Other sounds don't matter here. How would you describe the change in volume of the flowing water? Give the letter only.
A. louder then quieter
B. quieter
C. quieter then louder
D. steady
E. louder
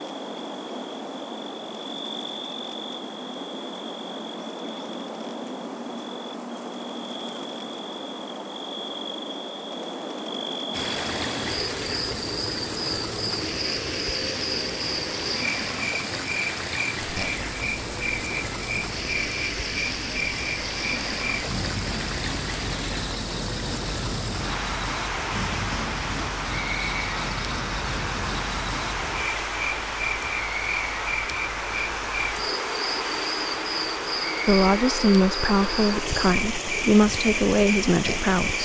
D.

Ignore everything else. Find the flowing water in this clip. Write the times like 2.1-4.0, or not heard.
10.7-38.6.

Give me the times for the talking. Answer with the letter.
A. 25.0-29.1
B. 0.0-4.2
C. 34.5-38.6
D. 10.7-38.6
C.